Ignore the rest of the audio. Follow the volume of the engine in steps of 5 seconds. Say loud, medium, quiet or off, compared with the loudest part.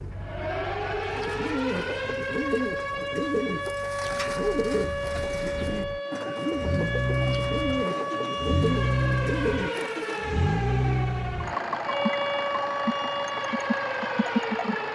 quiet, loud, loud.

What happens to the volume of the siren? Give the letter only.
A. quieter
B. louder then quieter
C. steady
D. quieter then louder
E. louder
C.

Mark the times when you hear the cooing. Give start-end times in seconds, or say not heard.
0.9-10.2.